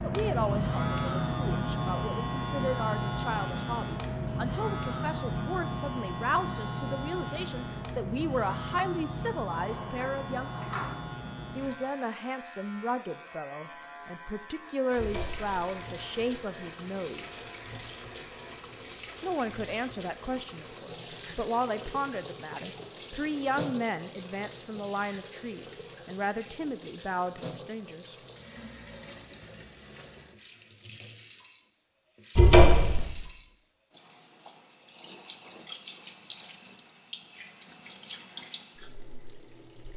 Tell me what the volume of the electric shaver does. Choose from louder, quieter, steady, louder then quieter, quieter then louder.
quieter.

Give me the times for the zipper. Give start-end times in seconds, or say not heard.
not heard.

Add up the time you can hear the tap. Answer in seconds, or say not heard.
25 s.